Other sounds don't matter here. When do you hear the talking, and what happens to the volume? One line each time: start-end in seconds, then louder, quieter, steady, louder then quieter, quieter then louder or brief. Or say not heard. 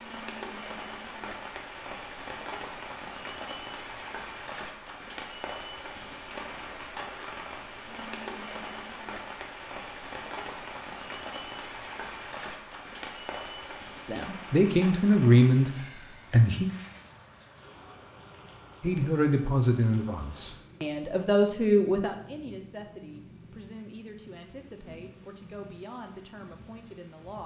14.1-16.7 brief
18.8-27.4 quieter.